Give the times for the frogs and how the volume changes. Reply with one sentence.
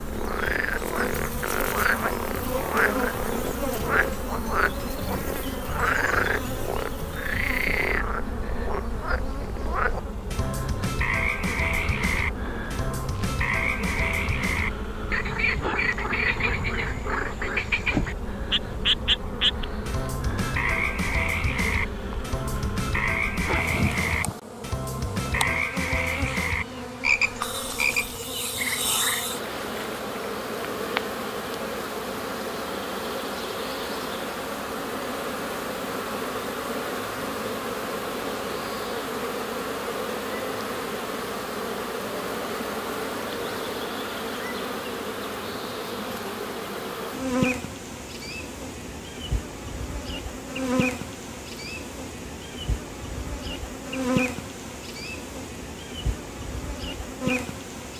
The frogs can be heard from 0.0 to 29.2 s, at a steady volume.